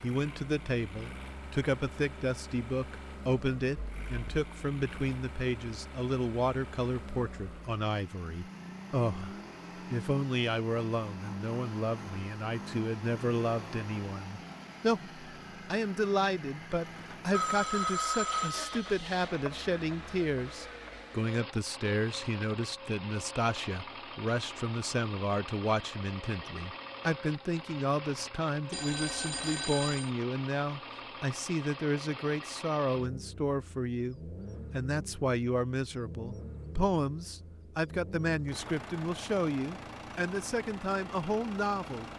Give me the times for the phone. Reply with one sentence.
You can hear the phone from 3.8 to 4.5 s, from 17.3 to 19.4 s and from 28.7 to 30.1 s.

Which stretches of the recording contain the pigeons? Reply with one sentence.
You can't hear the pigeons here.